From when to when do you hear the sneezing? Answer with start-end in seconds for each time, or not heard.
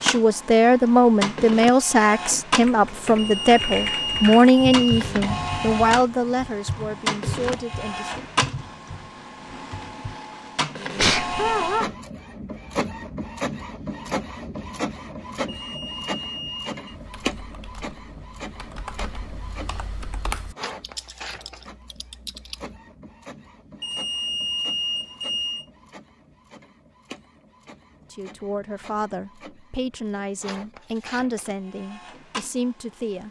10.9-11.9.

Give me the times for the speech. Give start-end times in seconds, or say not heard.
0.0-8.2, 28.1-33.2.